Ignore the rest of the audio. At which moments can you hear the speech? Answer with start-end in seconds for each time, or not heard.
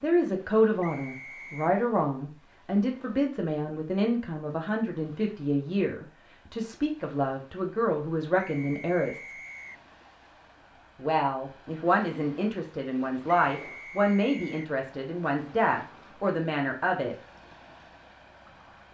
0.0-9.3, 10.9-17.1.